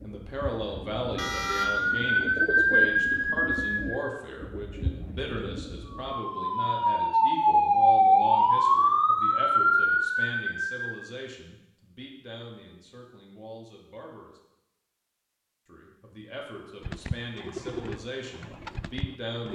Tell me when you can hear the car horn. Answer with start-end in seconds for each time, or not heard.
1.1-1.7.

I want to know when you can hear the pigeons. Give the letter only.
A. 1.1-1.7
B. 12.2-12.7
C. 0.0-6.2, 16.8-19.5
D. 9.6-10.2
C.